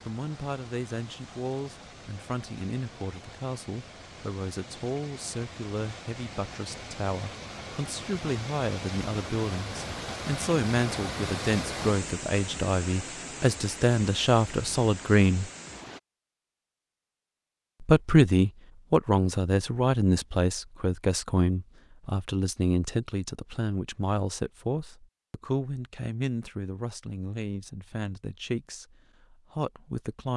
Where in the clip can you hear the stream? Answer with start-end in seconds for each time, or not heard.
0.0-16.0.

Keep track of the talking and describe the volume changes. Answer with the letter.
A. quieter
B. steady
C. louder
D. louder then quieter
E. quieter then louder
D.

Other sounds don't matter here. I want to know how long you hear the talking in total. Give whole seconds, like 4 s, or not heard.
28 s.